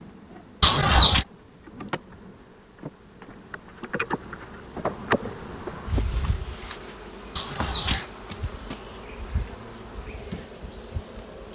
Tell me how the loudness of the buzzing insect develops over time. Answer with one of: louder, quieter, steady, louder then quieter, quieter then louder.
louder then quieter.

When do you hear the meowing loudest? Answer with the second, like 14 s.
1 s.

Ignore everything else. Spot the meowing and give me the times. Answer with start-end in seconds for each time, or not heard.
0.6-1.2, 7.3-8.1.